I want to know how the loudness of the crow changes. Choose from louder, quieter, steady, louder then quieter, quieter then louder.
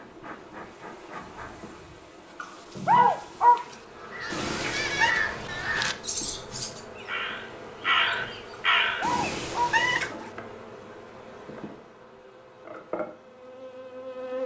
quieter then louder.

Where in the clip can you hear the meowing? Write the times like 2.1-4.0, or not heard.
4.3-5.2, 9.0-10.2.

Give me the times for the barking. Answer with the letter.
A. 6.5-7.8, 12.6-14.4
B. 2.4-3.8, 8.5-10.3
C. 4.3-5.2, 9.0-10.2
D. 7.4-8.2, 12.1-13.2
B.